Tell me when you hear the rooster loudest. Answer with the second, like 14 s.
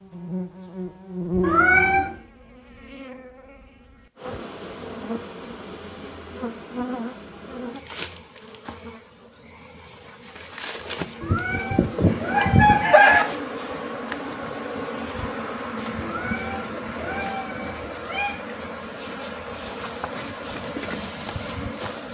13 s.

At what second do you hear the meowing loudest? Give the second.
2 s.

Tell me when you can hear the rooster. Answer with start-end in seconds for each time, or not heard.
11.2-13.2.